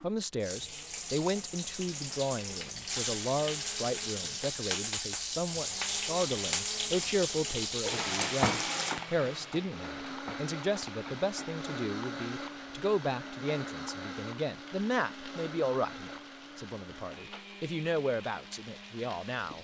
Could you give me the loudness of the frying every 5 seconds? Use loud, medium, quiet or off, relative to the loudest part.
loud, loud, quiet, quiet.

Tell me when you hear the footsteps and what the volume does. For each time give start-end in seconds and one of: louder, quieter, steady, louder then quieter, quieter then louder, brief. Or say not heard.
not heard.